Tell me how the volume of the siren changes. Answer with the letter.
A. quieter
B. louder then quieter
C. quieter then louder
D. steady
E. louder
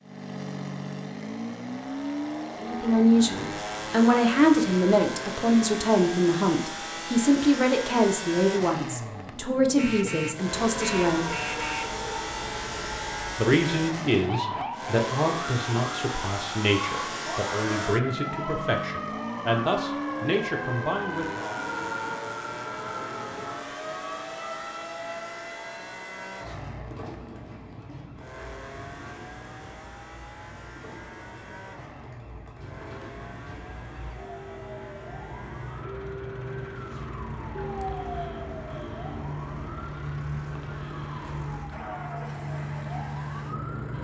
C.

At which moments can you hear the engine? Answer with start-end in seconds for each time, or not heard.
0.0-44.0.